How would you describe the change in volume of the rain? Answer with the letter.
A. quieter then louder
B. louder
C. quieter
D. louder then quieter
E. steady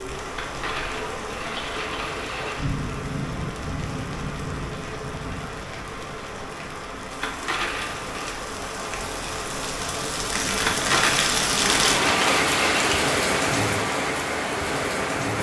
B.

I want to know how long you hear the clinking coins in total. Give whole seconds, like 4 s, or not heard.
6 s.